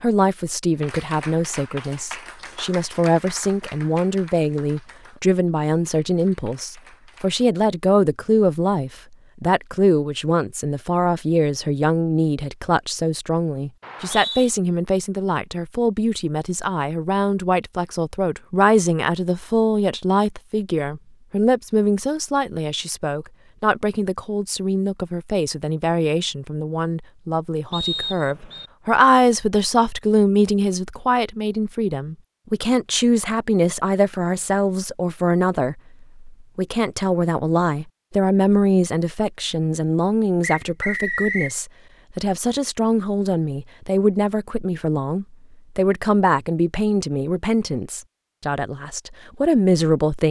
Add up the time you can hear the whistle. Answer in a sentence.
You can hear the whistle for 3 seconds altogether.